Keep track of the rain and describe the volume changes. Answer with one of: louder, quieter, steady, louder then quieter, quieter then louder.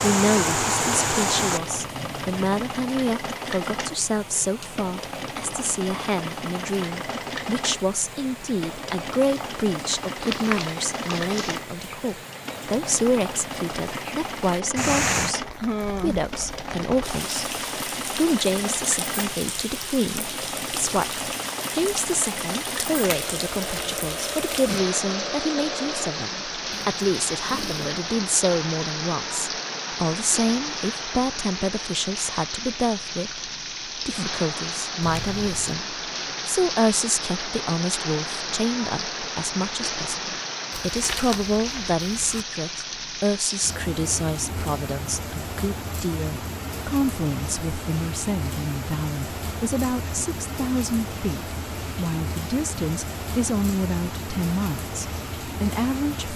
steady.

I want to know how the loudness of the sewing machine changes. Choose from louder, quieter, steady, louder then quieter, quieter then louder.
steady.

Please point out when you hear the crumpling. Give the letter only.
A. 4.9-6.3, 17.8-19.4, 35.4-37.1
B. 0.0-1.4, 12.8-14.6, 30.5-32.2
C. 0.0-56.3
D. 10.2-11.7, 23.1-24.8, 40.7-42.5
D.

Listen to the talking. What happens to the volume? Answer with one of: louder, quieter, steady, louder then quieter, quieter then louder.
steady.